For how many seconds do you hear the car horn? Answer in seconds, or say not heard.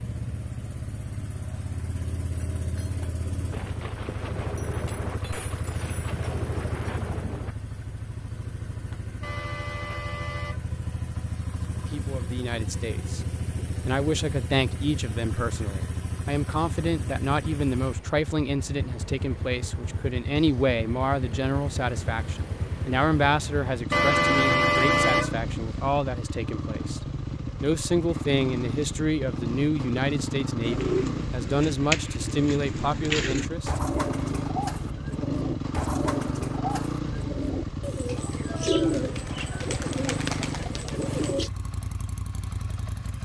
3 s.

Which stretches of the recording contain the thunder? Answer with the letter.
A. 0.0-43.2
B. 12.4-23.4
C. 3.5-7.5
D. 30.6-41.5
C.